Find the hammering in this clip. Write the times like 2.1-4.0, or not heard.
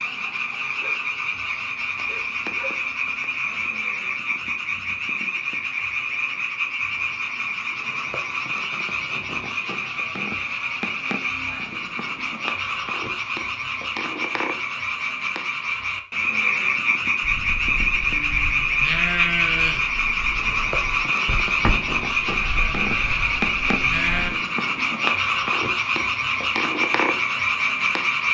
not heard.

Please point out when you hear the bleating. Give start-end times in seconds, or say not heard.
17.2-24.4.